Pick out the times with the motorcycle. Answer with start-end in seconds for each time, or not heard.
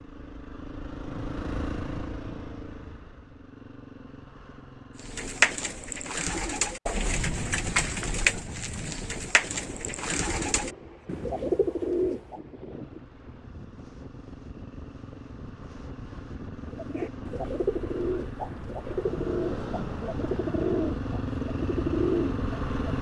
0.0-6.2, 12.7-22.9.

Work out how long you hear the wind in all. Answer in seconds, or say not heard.
16 s.